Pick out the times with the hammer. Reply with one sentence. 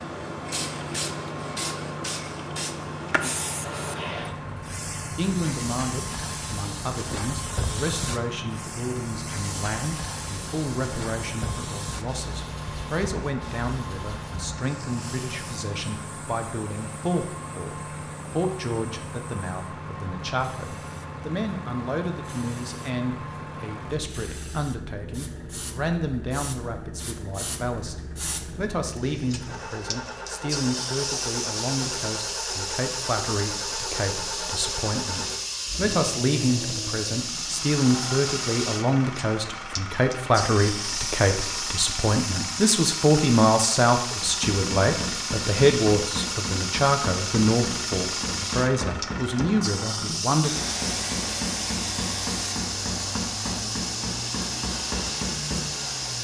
The hammer can be heard from 44.2 to 55.8 s.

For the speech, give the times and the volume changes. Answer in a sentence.
You can hear the speech from 5.2 to 50.5 s, getting louder.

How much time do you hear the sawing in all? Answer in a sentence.
The sawing can be heard for 2 seconds in total.